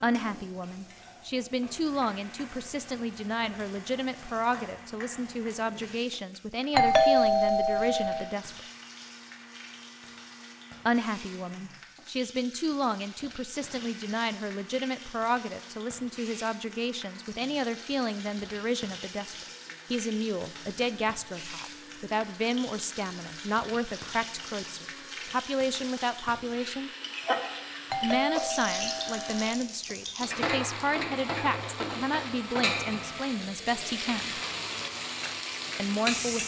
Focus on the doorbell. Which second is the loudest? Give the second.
7 s.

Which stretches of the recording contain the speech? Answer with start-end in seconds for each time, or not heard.
0.0-8.6, 10.8-26.9, 28.0-34.4, 35.8-36.4.